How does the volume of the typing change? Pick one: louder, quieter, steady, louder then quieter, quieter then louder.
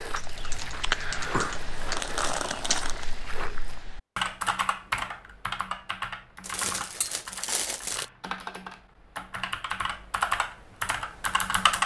quieter then louder.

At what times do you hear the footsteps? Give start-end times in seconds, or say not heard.
0.0-3.9.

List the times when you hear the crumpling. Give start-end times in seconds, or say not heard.
1.1-3.0, 6.4-8.1.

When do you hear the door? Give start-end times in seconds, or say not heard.
not heard.